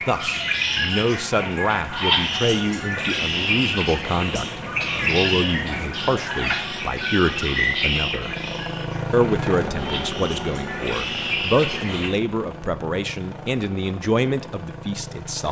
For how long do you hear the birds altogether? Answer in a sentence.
You can hear the birds for 12 seconds altogether.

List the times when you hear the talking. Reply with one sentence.
The talking can be heard from 0.1 to 8.3 s and from 9.1 to 15.4 s.